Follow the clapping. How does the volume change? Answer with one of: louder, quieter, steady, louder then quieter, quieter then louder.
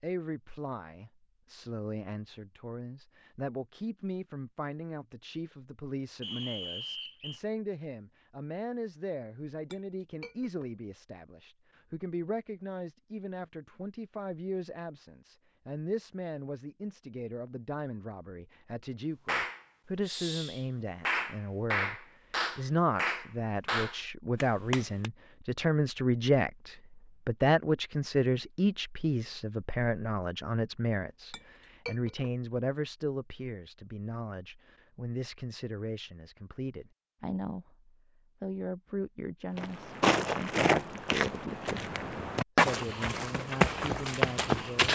louder.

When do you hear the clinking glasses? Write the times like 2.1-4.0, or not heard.
9.7-10.7, 31.3-32.3.